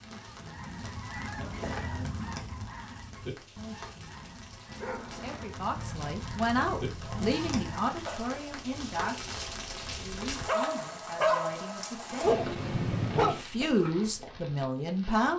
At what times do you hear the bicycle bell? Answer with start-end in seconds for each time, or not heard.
not heard.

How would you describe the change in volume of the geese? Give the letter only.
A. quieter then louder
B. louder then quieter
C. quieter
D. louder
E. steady
A.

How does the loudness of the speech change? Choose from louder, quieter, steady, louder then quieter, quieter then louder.
quieter then louder.